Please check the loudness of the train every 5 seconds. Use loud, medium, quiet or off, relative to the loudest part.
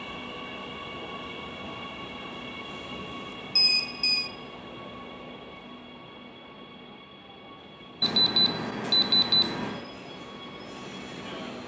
loud, medium, loud.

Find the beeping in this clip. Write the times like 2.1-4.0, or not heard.
2.9-4.3, 8.0-9.8.